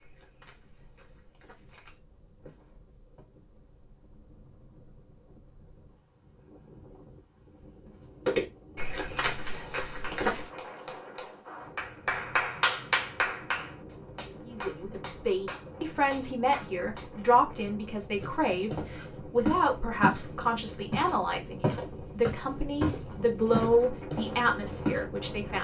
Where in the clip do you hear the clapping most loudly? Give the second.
13 s.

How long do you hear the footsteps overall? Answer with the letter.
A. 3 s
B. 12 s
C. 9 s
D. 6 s
B.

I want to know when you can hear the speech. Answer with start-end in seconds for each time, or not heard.
14.4-25.5.